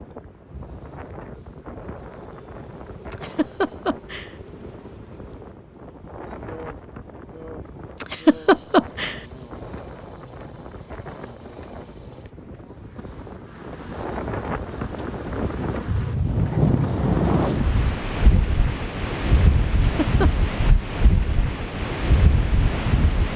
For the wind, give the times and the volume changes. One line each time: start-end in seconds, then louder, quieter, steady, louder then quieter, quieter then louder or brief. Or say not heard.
0.0-23.3 louder.